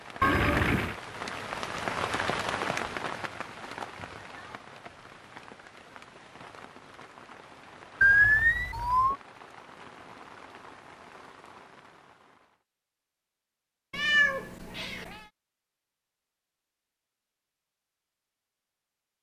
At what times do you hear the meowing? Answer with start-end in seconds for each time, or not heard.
0.2-0.9, 8.0-9.2, 13.9-15.2.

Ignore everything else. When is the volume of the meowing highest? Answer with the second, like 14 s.
8 s.